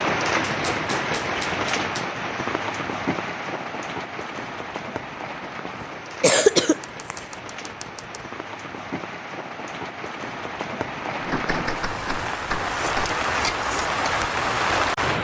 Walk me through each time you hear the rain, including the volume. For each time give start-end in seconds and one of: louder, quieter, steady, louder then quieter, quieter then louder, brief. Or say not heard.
0.0-15.1 quieter then louder.